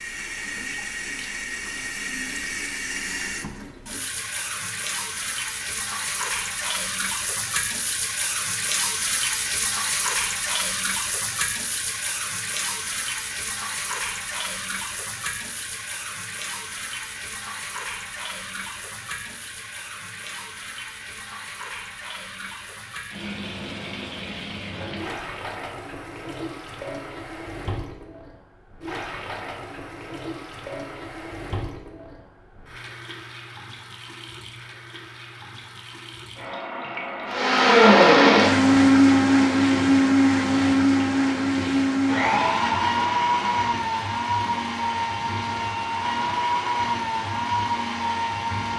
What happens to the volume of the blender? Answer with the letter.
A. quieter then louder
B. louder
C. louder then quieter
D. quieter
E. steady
D.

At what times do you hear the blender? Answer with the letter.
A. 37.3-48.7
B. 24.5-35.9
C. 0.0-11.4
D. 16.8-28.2
A.